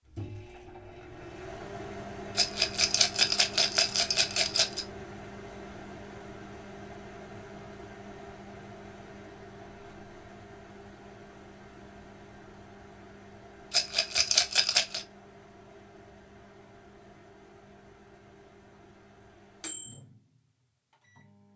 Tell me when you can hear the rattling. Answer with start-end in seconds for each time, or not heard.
2.4-4.8, 13.7-15.1.